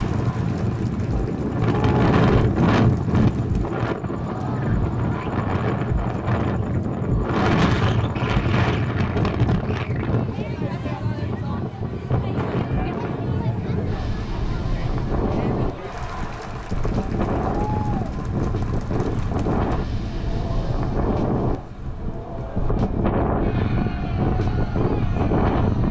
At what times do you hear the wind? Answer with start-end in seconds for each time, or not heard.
0.0-25.8.